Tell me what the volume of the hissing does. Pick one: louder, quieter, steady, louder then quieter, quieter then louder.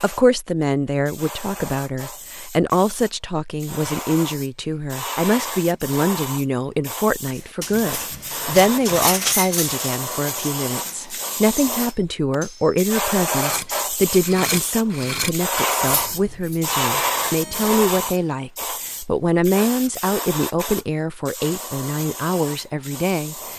louder then quieter.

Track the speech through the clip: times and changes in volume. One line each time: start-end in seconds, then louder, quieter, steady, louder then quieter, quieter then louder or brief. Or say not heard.
0.0-23.5 steady.